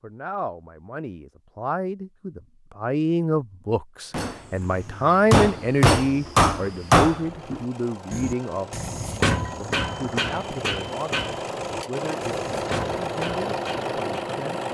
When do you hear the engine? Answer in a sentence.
You can hear the engine from 4.2 to 14.6 s.